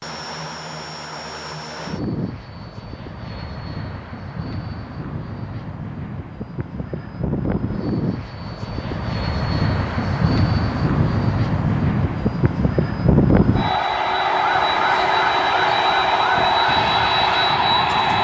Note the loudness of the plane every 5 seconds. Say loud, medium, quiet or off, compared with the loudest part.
quiet, medium, loud, loud.